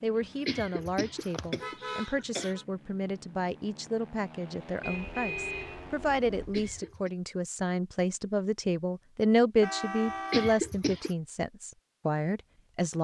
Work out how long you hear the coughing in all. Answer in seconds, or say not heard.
4 s.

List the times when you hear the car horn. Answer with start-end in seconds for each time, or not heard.
1.6-2.6, 4.8-6.8, 9.6-10.6.